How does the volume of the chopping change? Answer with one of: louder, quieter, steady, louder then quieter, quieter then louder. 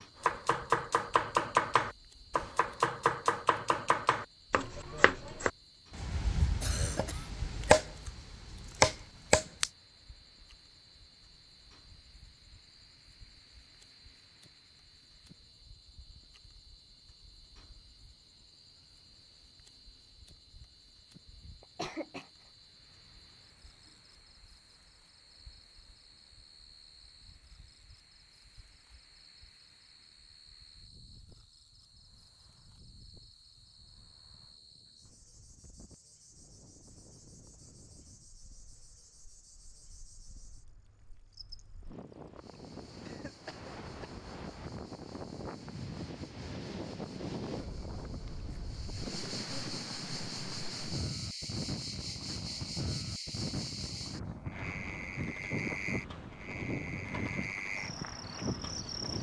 quieter then louder.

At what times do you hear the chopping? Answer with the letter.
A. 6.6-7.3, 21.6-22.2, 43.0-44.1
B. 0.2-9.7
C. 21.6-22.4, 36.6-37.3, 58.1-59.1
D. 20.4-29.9
B.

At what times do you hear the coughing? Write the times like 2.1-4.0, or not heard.
6.6-7.3, 21.6-22.2, 43.0-44.1.